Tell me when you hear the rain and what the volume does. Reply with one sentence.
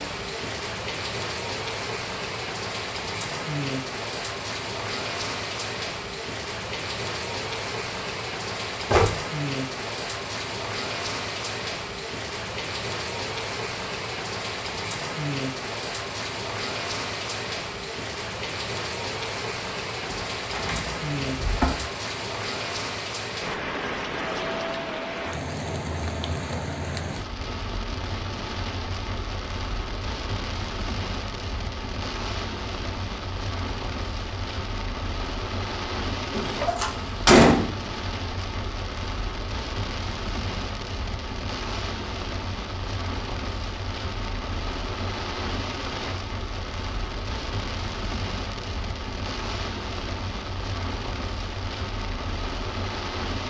You can hear the rain from 0.0 to 53.4 s, at a steady volume.